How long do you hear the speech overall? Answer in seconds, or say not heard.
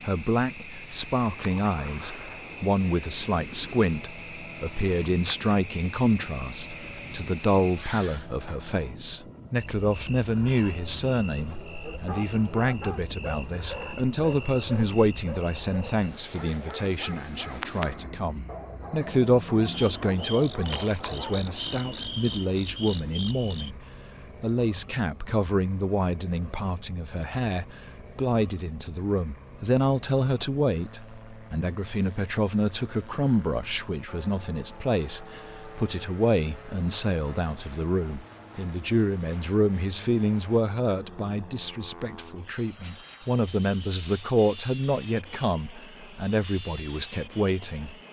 47 s.